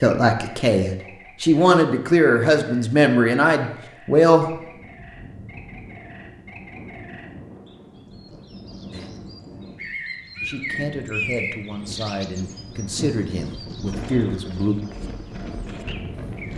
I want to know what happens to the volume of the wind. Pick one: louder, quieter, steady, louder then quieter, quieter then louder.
louder.